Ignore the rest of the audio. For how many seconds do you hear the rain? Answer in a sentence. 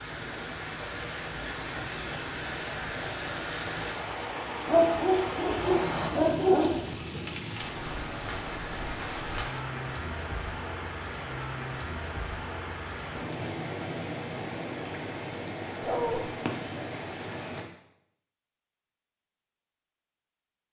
The rain can be heard for 18 seconds in total.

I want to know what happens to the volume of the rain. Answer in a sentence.
The volume of the rain stays about the same.